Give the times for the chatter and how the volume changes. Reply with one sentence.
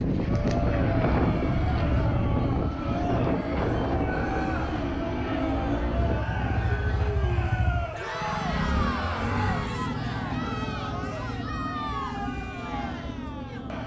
The chatter can be heard from 0.1 to 13.8 s, at a steady volume.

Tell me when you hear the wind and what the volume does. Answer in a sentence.
You can hear the wind from 0.0 to 7.1 s, getting quieter.